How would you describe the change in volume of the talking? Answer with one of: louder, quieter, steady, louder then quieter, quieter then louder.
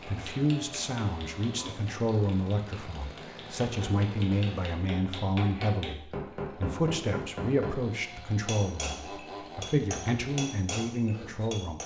steady.